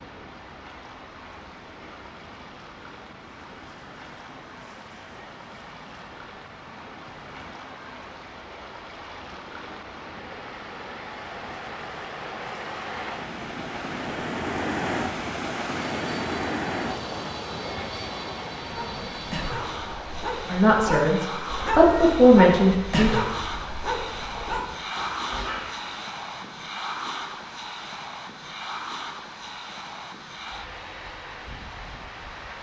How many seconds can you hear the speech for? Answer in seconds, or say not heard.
3 s.